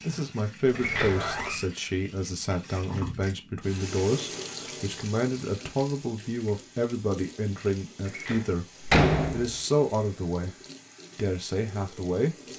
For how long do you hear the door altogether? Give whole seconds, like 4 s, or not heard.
2 s.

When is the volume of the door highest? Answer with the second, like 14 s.
9 s.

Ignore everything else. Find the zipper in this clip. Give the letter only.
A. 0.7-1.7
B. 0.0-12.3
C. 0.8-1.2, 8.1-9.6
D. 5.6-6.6
A.